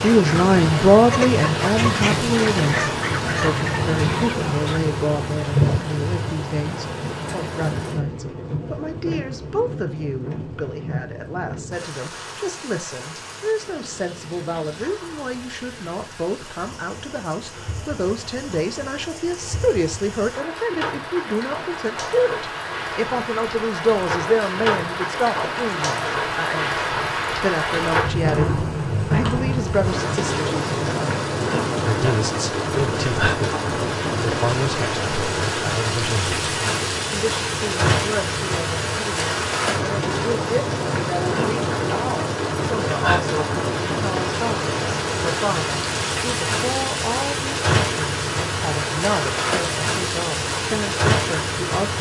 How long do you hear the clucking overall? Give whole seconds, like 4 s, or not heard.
5 s.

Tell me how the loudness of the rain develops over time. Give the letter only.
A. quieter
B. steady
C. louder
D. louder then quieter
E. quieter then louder
E.